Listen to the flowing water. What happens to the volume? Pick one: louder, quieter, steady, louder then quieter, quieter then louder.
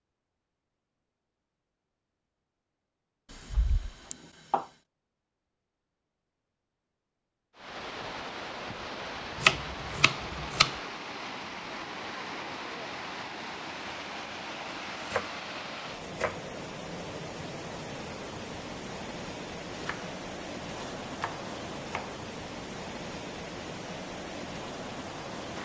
steady.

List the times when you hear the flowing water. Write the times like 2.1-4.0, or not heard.
7.5-25.6.